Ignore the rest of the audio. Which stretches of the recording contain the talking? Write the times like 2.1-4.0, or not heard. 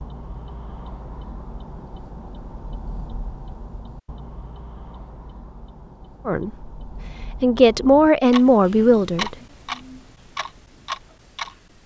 6.2-6.7, 7.4-9.3.